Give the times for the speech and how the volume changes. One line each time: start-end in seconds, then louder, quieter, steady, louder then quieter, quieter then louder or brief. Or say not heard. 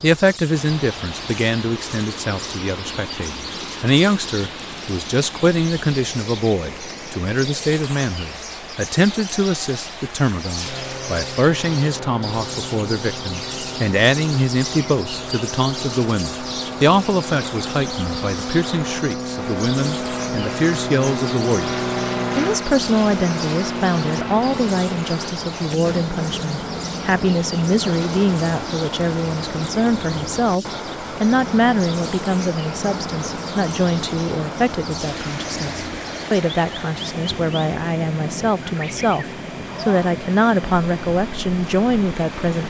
0.0-42.6 steady.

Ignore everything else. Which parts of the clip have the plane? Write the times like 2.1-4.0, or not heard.
10.6-42.6.